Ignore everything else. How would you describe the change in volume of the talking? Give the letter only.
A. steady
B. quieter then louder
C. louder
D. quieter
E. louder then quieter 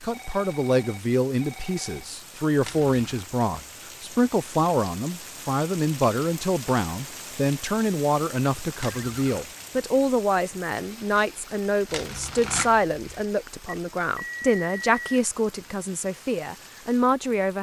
A.